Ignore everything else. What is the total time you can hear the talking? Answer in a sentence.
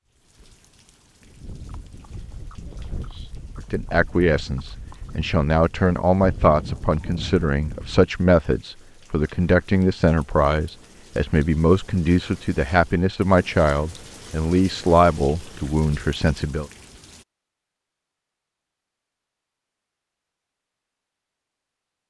The talking can be heard for 13 seconds in total.